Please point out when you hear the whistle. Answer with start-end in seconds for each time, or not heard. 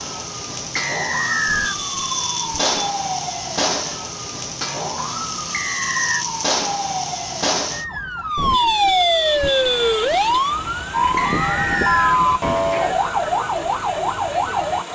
0.8-1.8, 5.5-6.2, 11.2-12.2.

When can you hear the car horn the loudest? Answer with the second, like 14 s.
9 s.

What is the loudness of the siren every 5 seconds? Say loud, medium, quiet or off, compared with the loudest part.
medium, loud, loud.